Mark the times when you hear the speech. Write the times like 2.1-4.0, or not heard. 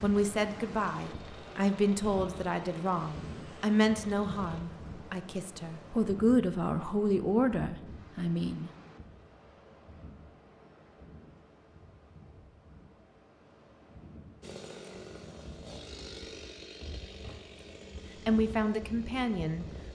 0.0-8.7, 18.2-19.6.